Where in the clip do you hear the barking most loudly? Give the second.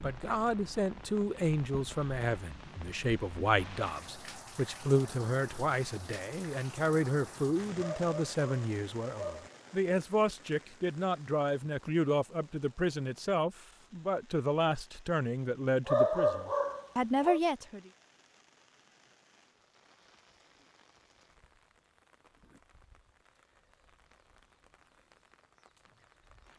16 s.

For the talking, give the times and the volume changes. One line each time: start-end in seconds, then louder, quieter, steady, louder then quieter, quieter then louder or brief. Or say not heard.
0.0-17.9 steady.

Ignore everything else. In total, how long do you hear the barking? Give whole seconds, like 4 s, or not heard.
3 s.